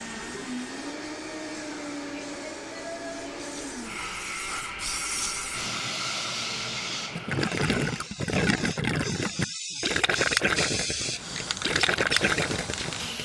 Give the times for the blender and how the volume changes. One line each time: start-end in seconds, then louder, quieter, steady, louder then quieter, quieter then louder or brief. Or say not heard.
0.0-8.1 steady.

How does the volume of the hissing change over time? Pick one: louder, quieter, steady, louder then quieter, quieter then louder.
louder.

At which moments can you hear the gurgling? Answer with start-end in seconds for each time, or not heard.
7.2-13.2.